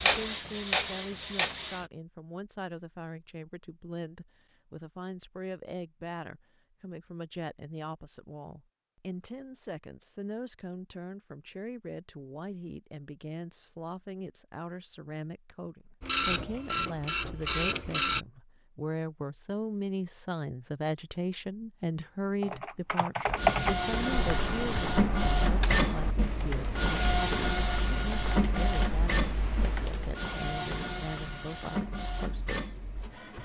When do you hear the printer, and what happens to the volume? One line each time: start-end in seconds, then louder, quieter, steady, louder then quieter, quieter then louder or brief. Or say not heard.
0.0-1.9 brief
16.0-18.2 brief
23.2-33.4 quieter.